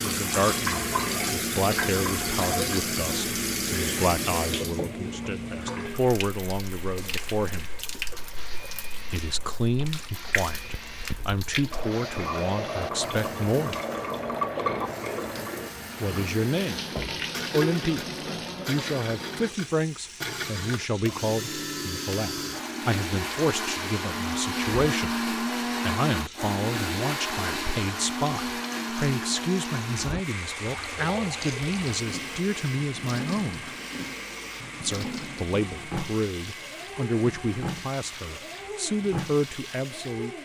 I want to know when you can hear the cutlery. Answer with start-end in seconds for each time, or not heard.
not heard.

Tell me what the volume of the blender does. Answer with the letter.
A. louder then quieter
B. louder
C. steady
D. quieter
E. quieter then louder
A.